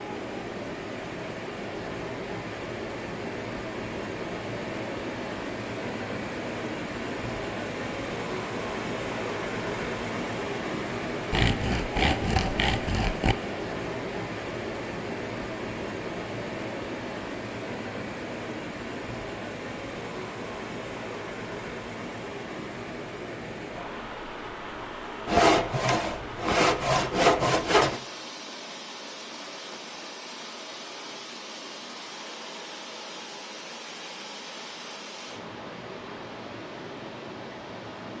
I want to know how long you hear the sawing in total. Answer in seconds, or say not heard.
5 s.